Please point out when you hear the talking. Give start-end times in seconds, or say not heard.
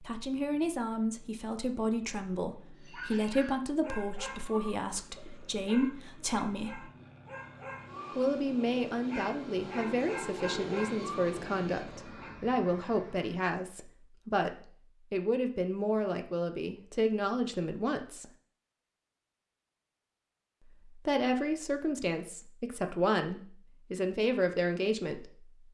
0.0-6.9, 8.2-18.2, 20.9-25.5.